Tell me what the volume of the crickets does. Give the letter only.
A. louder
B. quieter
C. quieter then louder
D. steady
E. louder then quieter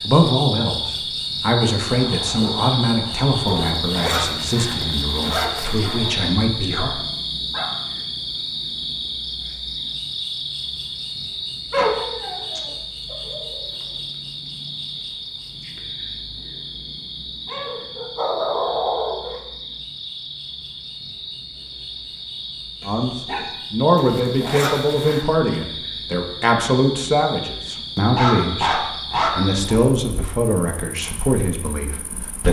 B.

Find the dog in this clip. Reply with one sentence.
The dog can be heard from 1.9 to 3.9 s, from 5.8 to 7.8 s, from 11.7 to 13.6 s, from 17.4 to 19.4 s, from 22.8 to 23.4 s and from 28.1 to 29.8 s.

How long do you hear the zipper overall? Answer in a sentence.
The zipper can be heard for 4 seconds in total.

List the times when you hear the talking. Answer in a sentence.
You can hear the talking from 0.1 to 6.9 s and from 22.9 to 32.4 s.